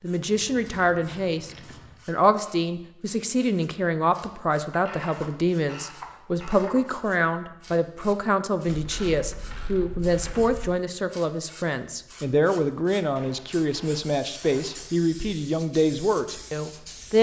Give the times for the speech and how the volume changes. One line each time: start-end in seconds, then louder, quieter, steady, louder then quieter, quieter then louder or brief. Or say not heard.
0.0-17.1 steady.